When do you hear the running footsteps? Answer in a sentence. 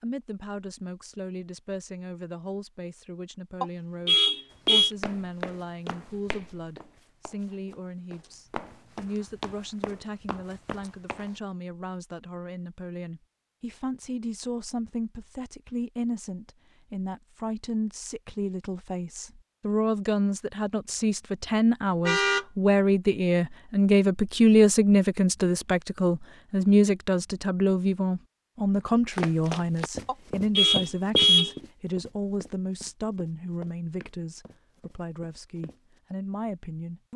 You can hear the running footsteps from 4.7 to 11.3 s and from 29.1 to 36.0 s.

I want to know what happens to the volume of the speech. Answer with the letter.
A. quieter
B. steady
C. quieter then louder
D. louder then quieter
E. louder
D.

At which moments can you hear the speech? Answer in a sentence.
The speech can be heard from 0.0 to 37.1 s.